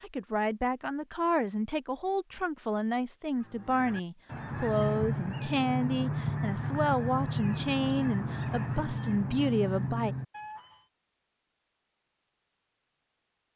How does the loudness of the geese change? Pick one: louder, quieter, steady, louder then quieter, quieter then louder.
steady.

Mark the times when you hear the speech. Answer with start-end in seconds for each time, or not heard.
0.0-10.2.